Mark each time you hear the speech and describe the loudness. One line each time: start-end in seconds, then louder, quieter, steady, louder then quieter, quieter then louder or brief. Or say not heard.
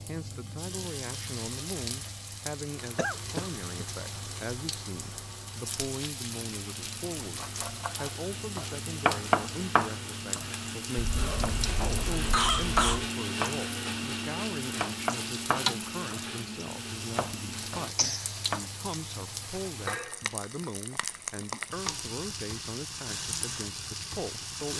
0.1-24.7 steady.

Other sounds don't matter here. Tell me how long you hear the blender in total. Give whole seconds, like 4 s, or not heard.
15 s.